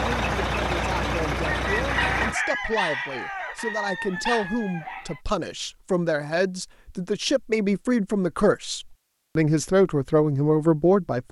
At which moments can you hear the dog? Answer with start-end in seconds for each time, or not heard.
1.9-4.5.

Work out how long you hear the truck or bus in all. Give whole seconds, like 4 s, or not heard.
2 s.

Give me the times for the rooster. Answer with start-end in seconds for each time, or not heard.
1.4-5.2.